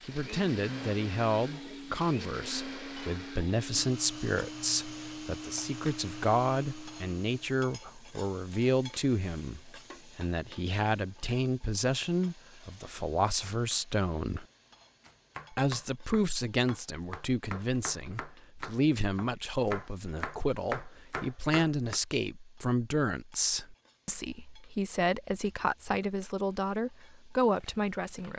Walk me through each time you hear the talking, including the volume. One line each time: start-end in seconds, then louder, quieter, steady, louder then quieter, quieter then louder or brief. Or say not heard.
0.1-14.4 steady
15.5-28.3 steady.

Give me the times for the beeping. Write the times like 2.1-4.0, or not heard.
not heard.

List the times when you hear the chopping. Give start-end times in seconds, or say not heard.
15.0-22.0.